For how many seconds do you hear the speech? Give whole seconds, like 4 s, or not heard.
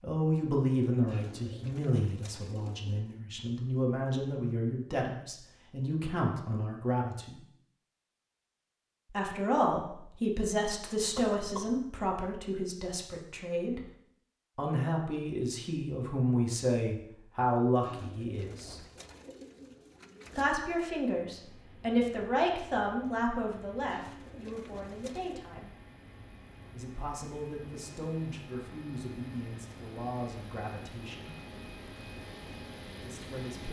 27 s.